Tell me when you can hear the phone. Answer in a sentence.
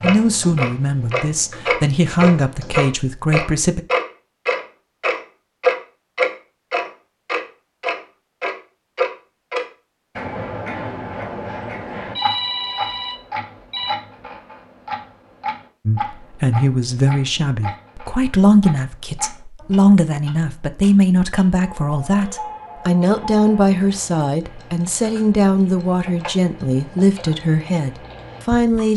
The phone can be heard from 12.2 to 13.9 s.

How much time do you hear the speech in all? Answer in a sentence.
You can hear the speech for 17 seconds altogether.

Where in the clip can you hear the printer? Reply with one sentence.
You can't hear the printer here.